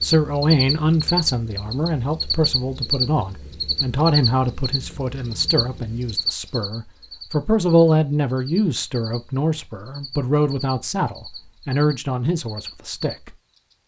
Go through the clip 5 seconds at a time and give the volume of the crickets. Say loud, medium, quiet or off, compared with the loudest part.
loud, medium, quiet.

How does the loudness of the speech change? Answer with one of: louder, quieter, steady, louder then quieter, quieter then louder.
steady.